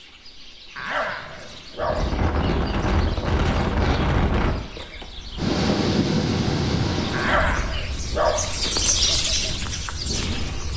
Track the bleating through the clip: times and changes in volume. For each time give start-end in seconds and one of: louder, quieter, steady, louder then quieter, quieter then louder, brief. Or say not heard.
not heard.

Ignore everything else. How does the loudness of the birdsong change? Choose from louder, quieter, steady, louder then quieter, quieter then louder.
louder.